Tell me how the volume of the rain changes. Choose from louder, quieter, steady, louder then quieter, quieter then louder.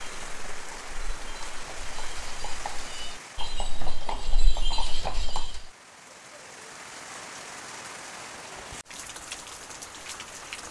quieter then louder.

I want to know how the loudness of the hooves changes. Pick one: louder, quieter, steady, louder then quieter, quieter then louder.
louder.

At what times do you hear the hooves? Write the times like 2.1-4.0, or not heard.
0.0-5.7.